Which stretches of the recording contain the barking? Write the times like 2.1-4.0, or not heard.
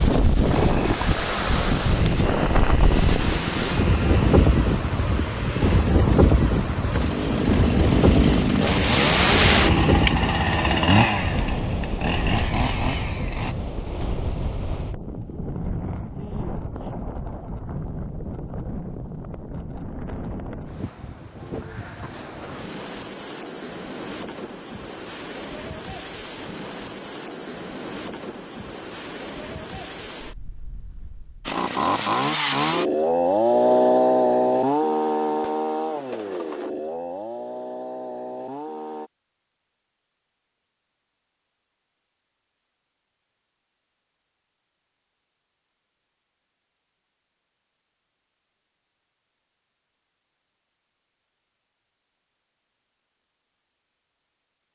not heard.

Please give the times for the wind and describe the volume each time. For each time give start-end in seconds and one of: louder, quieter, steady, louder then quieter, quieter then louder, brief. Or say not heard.
0.0-31.6 quieter.